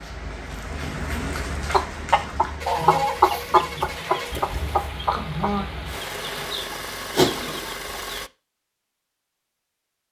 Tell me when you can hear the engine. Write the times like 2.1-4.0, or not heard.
2.6-8.3.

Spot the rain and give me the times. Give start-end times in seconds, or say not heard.
0.0-6.5.